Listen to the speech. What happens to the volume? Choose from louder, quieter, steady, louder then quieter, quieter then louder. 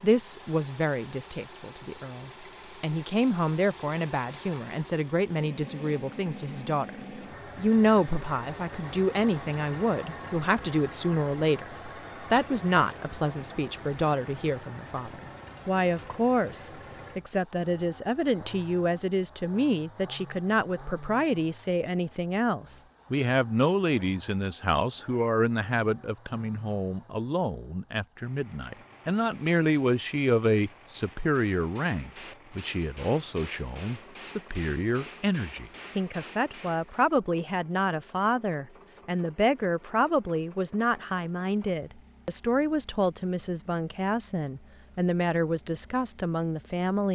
steady.